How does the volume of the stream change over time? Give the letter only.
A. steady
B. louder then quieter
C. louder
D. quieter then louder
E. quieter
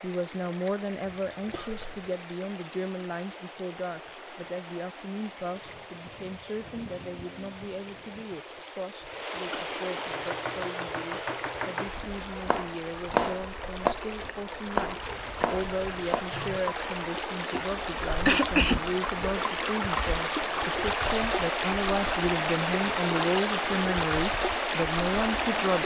C.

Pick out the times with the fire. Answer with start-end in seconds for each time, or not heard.
not heard.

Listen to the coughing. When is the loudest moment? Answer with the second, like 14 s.
18 s.